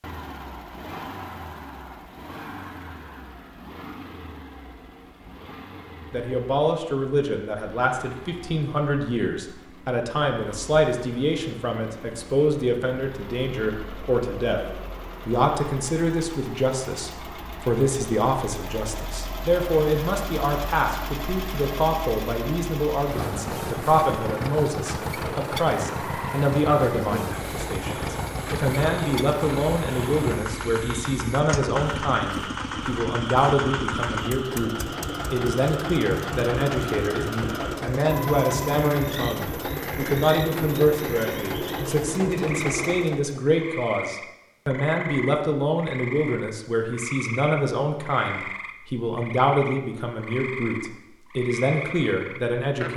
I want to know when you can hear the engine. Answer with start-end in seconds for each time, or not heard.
0.0-43.4.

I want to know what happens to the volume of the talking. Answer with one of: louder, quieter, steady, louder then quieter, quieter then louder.
steady.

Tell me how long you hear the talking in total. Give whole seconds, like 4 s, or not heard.
47 s.